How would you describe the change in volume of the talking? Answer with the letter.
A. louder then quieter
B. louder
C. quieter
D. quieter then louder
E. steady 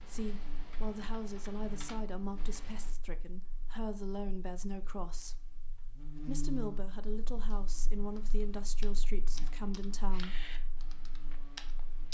E.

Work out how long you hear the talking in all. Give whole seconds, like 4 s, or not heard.
10 s.